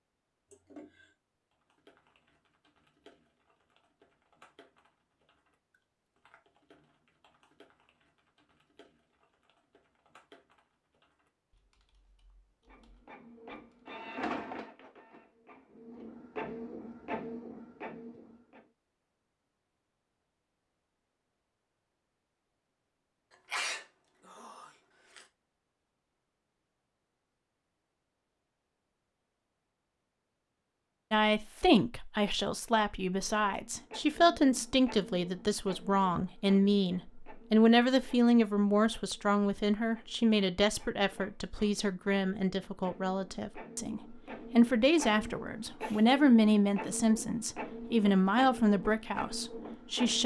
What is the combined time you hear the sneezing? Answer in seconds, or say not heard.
3 s.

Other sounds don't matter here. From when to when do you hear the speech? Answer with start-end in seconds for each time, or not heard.
31.1-50.2.